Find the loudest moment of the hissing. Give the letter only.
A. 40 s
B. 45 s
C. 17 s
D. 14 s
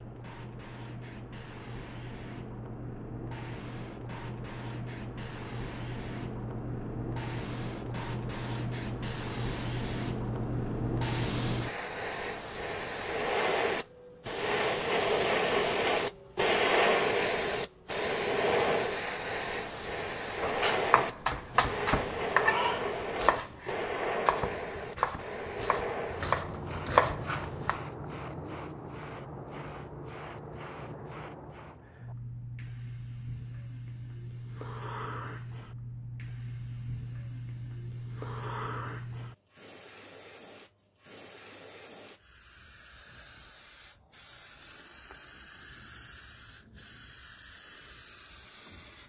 C.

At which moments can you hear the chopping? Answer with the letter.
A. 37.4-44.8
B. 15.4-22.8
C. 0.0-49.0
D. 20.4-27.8
D.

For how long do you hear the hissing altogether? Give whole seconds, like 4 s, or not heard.
49 s.